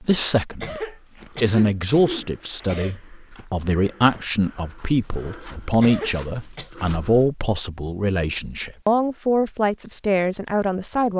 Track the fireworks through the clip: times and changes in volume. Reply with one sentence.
You can't hear the fireworks here.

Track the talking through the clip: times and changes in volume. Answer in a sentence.
You can hear the talking from 0.0 to 11.1 s, at a steady volume.